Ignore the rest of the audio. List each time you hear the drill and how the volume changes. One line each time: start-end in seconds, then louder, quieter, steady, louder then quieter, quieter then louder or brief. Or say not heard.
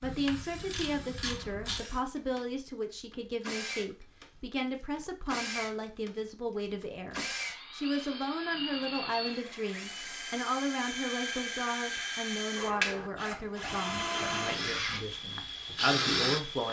0.0-16.6 louder.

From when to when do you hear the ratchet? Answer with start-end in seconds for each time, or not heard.
0.0-1.9.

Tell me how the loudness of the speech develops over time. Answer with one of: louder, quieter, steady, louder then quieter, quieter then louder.
steady.